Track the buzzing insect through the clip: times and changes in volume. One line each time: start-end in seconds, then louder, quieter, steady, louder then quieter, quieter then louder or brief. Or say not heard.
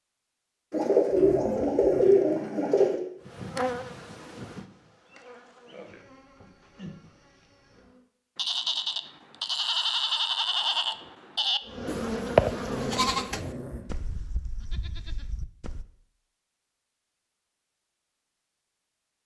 3.2-8.0 quieter then louder
11.7-13.4 brief.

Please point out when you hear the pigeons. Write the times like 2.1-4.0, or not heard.
0.7-3.0.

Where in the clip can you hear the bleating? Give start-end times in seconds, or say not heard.
8.3-15.8.